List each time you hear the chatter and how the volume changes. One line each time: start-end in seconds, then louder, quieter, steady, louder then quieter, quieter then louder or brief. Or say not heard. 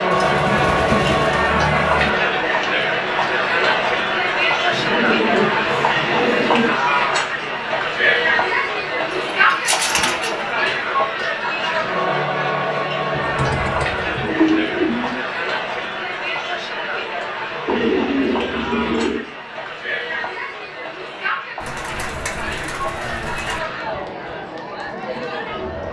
0.0-25.8 quieter.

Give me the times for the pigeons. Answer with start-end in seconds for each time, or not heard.
0.1-2.1, 4.7-6.7, 9.1-10.4, 13.1-15.2, 17.6-19.2, 21.6-23.6.